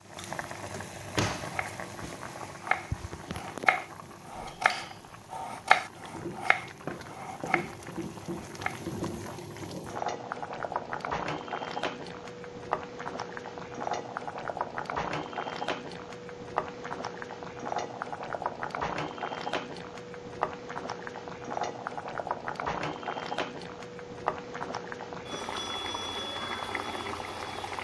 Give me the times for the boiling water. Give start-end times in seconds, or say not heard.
0.0-27.8.